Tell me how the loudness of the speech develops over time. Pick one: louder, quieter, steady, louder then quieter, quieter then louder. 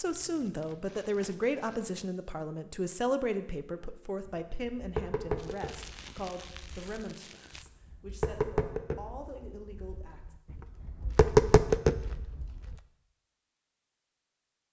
quieter.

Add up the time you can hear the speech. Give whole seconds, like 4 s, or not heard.
10 s.